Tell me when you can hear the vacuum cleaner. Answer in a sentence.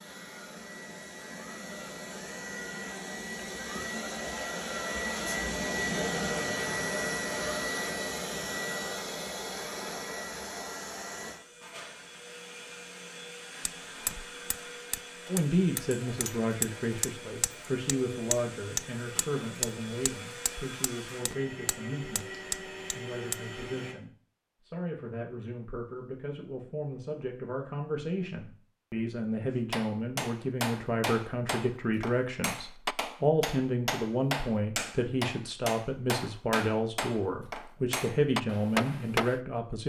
You can hear the vacuum cleaner from 0.0 to 23.9 s.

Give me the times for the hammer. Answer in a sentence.
The hammer can be heard from 13.7 to 23.4 s and from 29.7 to 39.4 s.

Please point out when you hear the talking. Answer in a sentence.
You can hear the talking from 15.2 to 39.8 s.